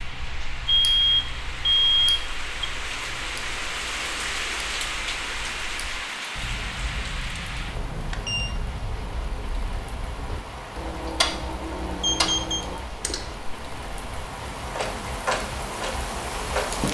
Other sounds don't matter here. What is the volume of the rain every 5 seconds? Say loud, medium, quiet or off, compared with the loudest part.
loud, loud, medium, loud.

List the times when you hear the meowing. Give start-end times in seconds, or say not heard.
not heard.